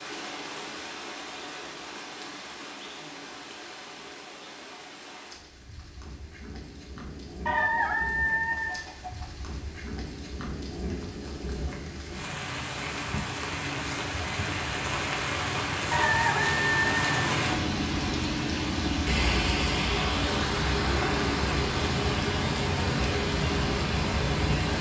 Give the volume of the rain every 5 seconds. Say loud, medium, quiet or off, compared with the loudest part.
quiet, quiet, medium, loud, loud.